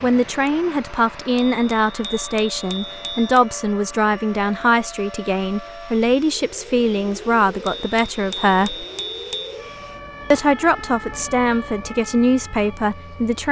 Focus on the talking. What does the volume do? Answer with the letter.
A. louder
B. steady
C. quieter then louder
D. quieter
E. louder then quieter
B.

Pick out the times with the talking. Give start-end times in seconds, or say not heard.
0.0-8.8, 10.3-13.4.